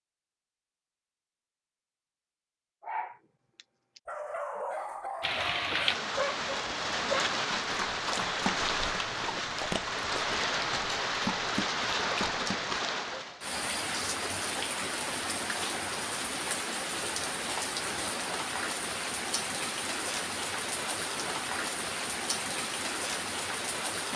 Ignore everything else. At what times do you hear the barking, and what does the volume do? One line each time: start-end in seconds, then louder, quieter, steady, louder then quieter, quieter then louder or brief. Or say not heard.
2.8-12.8 steady.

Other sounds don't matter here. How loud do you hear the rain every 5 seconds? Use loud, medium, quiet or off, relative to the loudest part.
off, loud, loud, loud, loud.